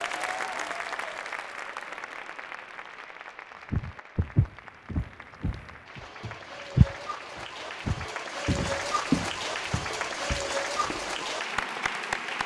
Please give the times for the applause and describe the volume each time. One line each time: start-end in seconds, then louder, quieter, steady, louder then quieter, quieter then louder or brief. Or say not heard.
0.0-12.4 quieter then louder.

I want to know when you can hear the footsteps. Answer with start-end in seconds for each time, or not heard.
3.7-11.3.